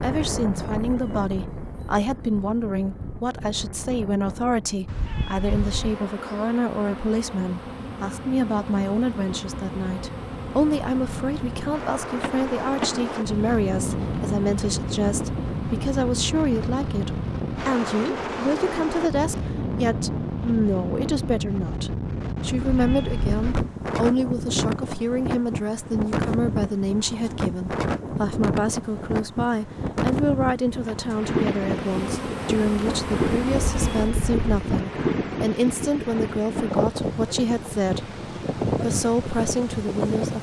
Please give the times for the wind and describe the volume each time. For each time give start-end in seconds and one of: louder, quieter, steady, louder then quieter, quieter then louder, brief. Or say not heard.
0.0-40.3 louder.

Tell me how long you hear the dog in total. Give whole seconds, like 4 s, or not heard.
not heard.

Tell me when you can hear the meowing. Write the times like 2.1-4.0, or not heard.
4.8-6.0, 22.6-23.8, 33.5-34.9.